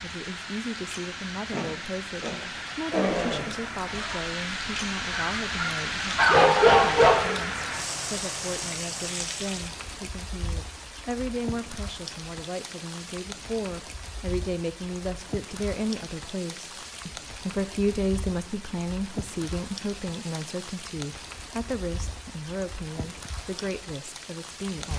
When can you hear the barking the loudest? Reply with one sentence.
The loudest moment of the barking is at 7 seconds.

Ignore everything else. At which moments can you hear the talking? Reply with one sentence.
You can hear the talking from 0.0 to 24.9 s.